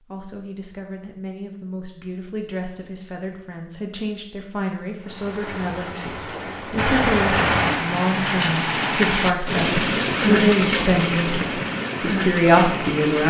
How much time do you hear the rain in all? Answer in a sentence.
The rain can be heard for 8 seconds in total.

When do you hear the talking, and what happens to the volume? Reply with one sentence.
The talking can be heard from 0.1 to 13.2 s, getting louder.